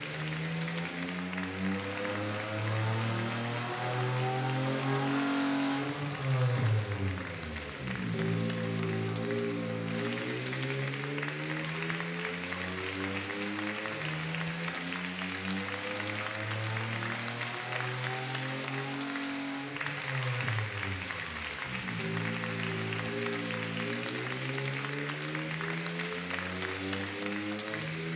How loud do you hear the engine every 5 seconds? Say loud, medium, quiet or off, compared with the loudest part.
loud, loud, medium, medium, medium, medium.